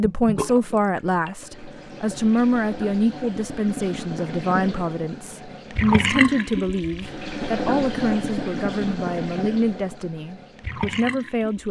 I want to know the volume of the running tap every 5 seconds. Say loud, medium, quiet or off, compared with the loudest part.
medium, loud, medium.